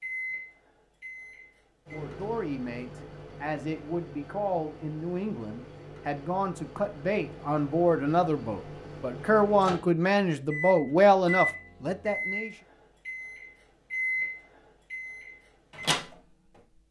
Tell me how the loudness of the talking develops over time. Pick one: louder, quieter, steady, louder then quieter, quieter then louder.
louder.